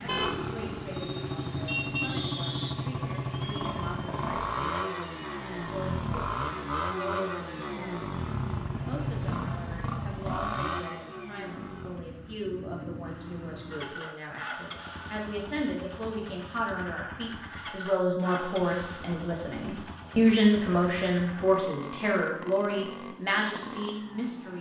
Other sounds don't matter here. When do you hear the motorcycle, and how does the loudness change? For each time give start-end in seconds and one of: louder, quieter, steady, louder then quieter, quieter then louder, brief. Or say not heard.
0.0-24.5 quieter.